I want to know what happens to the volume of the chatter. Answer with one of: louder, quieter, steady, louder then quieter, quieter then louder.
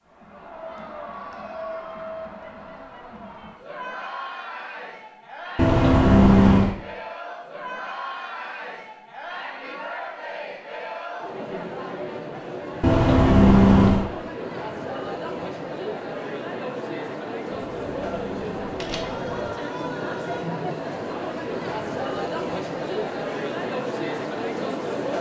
louder.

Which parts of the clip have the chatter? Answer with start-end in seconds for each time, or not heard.
0.0-25.1.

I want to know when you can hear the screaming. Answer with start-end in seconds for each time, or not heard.
19.0-20.4.